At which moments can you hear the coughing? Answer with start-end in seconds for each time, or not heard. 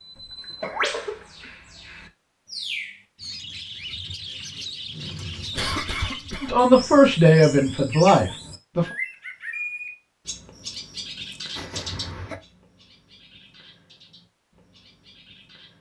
0.1-1.5, 5.5-6.7, 11.6-12.4.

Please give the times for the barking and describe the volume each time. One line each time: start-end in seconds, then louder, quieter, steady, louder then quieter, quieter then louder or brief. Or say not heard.
not heard.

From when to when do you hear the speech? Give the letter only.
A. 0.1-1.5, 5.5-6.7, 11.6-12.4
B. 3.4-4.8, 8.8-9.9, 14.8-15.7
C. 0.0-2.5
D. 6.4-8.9
D.